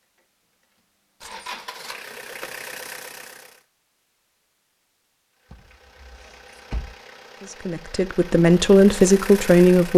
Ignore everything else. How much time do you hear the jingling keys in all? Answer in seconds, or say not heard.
2 s.